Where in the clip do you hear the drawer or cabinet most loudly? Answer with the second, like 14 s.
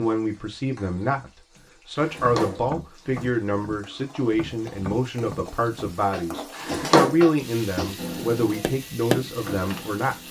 7 s.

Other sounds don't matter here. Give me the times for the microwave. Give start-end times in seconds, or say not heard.
8.0-10.2.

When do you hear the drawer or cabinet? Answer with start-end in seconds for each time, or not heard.
1.9-3.3, 6.5-7.2.